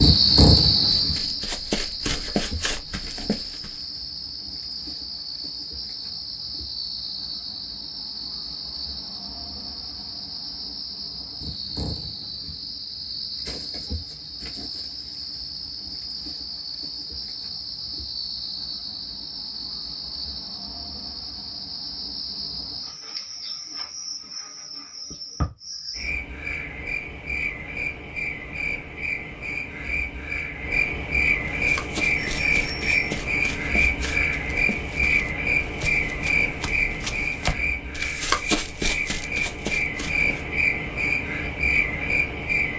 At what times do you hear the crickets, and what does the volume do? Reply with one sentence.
The crickets can be heard from 0.0 to 42.7 s, getting quieter then louder.